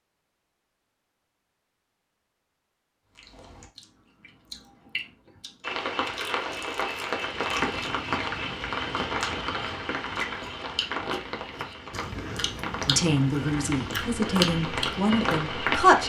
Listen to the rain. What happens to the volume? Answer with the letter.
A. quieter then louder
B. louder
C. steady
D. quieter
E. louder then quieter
A.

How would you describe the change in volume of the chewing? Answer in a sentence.
The loudness of the chewing goes up.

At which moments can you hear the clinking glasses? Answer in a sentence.
You can't hear the clinking glasses here.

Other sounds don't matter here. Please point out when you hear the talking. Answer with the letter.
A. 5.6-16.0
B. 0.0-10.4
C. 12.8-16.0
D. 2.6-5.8
C.